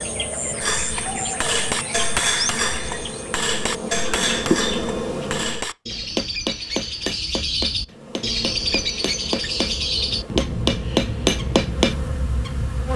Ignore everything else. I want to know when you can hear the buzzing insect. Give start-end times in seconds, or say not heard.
0.0-5.7, 7.8-12.9.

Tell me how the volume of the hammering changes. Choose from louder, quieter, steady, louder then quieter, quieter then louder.
quieter then louder.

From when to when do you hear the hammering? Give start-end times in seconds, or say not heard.
0.6-11.9.